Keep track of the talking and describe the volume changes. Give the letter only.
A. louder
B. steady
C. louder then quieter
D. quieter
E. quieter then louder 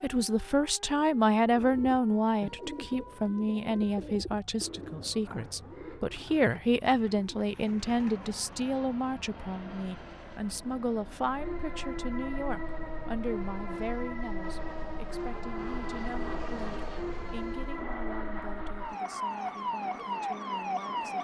D.